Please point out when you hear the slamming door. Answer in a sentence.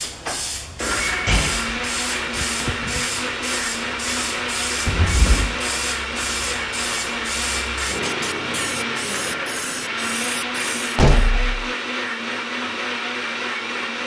The slamming door can be heard from 0.6 to 3.0 s, from 4.8 to 5.6 s and from 10.9 to 11.7 s.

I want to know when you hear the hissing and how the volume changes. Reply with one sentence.
The hissing can be heard from 0.0 to 11.1 s, at a steady volume.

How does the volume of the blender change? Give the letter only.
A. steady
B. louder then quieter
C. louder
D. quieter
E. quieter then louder
A.